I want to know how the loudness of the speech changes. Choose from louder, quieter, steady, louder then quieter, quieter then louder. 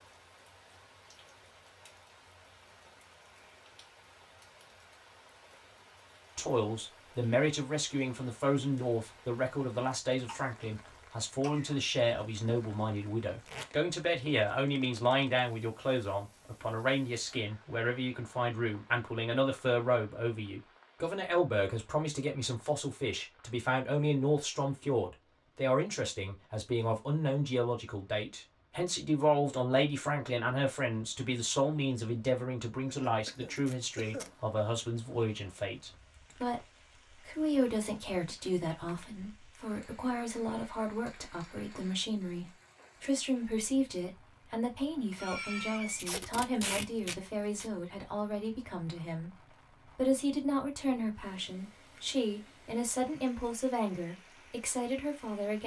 steady.